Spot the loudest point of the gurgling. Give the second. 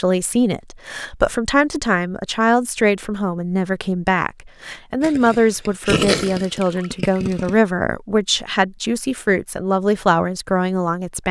6 s.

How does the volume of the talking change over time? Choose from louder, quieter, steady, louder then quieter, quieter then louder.
steady.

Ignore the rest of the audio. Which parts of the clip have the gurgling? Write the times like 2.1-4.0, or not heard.
5.0-7.5.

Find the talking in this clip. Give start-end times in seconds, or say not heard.
0.0-11.2.